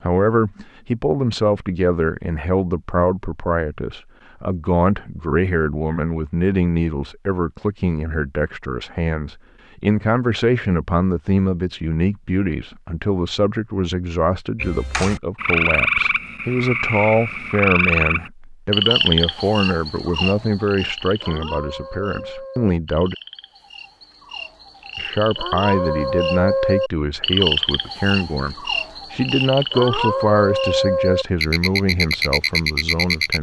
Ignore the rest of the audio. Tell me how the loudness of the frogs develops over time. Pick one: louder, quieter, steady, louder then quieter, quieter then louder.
quieter then louder.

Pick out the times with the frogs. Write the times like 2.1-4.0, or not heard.
14.6-33.3.